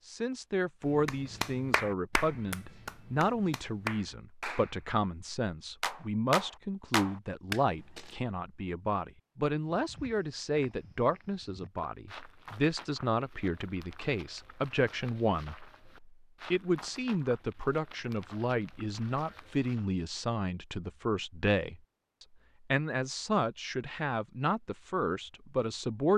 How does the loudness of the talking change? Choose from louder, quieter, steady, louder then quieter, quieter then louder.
steady.